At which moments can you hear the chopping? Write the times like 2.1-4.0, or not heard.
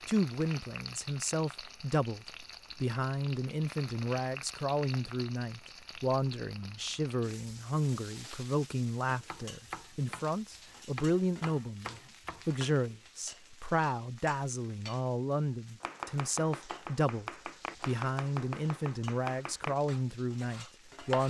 9.2-12.5, 15.8-21.2.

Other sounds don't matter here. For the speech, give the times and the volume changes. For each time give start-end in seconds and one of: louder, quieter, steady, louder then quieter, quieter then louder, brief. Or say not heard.
0.1-21.2 steady.